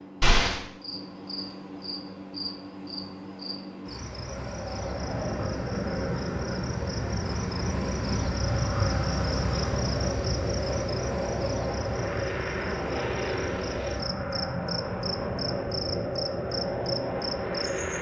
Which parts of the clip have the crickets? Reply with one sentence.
You can hear the crickets from 0.0 to 17.9 s.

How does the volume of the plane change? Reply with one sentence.
The loudness of the plane stays about the same.